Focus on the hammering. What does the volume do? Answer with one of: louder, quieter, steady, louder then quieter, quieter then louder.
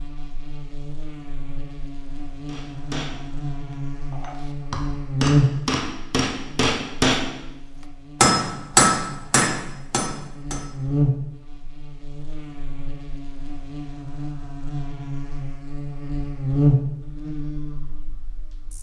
louder.